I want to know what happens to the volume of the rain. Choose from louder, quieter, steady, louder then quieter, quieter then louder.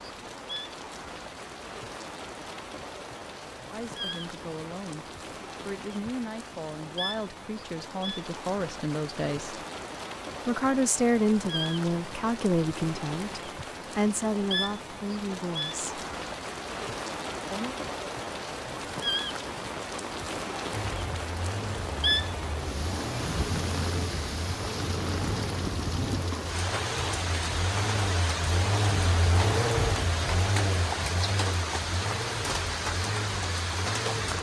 louder.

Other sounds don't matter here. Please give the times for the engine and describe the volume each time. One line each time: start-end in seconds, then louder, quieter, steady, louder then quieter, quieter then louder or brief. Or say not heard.
20.7-34.3 louder then quieter.